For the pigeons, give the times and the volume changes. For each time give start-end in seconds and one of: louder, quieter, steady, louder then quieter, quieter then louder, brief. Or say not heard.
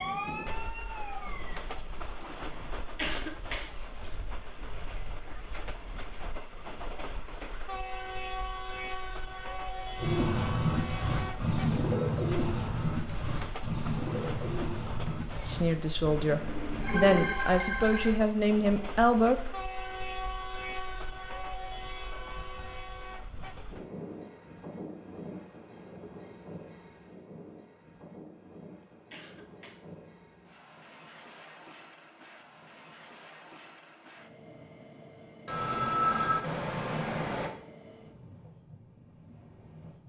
9.9-17.4 quieter.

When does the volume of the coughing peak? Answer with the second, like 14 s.
3 s.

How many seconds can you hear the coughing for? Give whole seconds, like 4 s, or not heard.
2 s.